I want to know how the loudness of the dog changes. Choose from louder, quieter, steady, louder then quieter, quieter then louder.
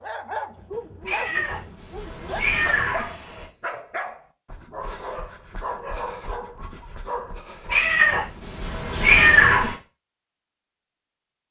steady.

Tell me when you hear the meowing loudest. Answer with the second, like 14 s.
9 s.